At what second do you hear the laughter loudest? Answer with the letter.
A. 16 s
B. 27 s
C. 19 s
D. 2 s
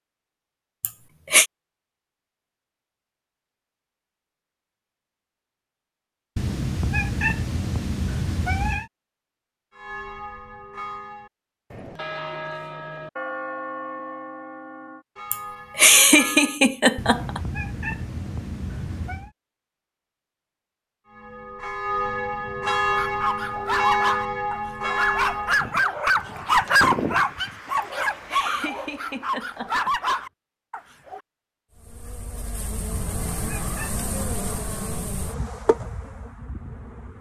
A.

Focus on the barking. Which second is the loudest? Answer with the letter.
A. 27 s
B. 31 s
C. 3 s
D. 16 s
A.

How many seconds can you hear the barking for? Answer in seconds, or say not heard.
8 s.